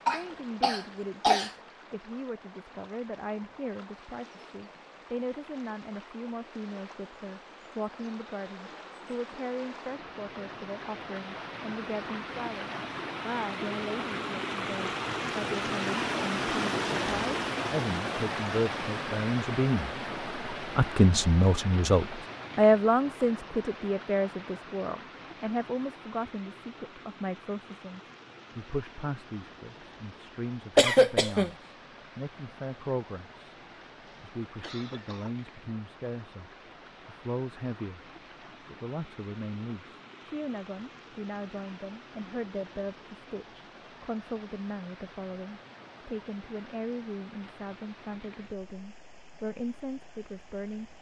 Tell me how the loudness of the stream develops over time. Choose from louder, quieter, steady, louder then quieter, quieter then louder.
louder then quieter.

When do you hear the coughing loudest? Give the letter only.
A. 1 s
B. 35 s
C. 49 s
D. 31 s
D.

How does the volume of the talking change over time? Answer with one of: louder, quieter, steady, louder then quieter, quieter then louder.
louder then quieter.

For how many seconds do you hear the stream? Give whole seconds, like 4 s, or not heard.
51 s.